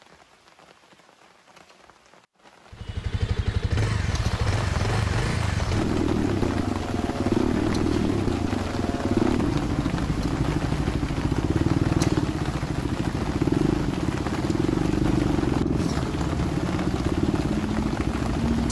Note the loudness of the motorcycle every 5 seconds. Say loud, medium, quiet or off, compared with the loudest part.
medium, loud, loud, loud.